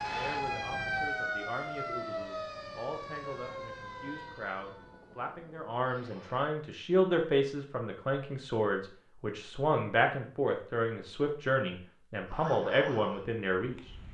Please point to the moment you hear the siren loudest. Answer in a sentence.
The volume of the siren peaks at 1 second.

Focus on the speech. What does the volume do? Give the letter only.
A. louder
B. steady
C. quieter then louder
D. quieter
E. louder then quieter
A.